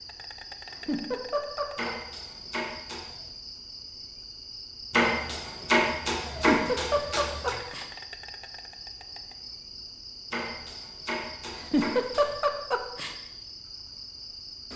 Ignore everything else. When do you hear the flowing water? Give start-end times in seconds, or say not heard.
not heard.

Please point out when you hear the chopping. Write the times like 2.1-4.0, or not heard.
1.8-3.2, 4.9-7.5, 10.3-12.3.